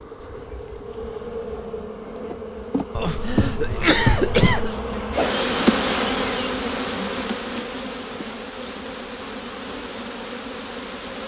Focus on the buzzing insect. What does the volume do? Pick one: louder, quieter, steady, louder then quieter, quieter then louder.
louder then quieter.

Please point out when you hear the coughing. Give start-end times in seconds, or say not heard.
3.0-4.8.